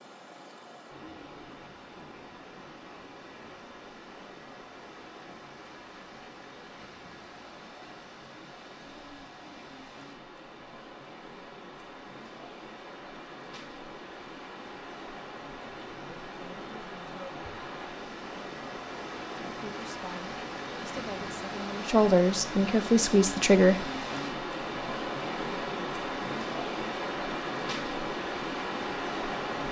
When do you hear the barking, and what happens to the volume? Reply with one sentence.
You can't hear the barking here.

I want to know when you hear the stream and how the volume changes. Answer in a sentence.
The stream can be heard from 0.0 to 29.6 s, getting louder.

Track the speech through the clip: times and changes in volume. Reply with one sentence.
The speech can be heard from 19.6 to 23.9 s, getting louder.